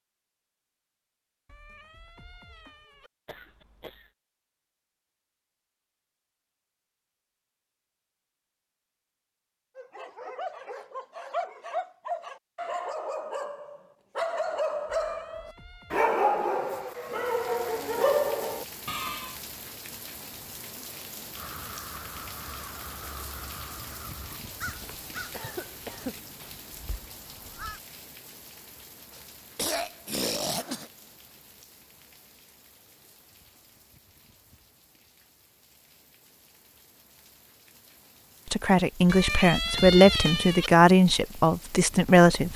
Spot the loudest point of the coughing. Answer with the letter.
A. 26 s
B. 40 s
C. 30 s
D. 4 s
C.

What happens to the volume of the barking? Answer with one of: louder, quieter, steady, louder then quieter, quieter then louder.
louder.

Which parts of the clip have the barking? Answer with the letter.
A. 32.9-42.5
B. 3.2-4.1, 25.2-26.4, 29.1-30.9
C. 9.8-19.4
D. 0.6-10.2
C.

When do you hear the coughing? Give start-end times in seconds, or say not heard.
3.2-4.1, 25.2-26.4, 29.1-30.9.